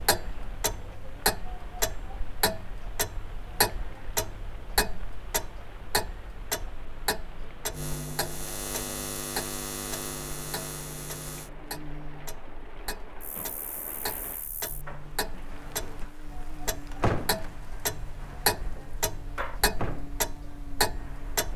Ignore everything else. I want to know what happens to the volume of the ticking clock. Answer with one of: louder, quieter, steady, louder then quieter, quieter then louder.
quieter then louder.